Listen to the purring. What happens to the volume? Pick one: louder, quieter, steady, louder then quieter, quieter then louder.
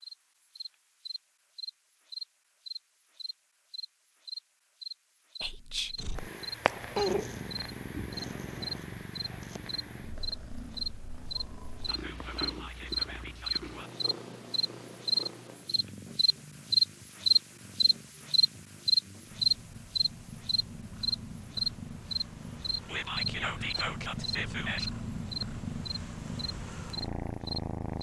quieter then louder.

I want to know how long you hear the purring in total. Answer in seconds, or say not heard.
22 s.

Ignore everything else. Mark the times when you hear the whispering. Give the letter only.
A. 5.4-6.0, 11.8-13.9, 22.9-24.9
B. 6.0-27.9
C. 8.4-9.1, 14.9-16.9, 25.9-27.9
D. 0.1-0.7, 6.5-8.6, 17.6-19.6
A.